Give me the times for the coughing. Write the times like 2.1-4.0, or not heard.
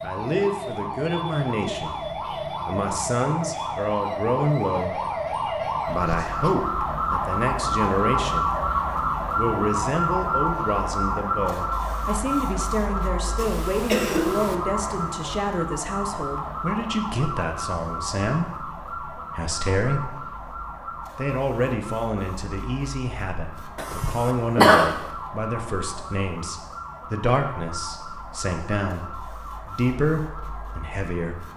5.8-6.5, 13.3-14.6, 23.8-24.9.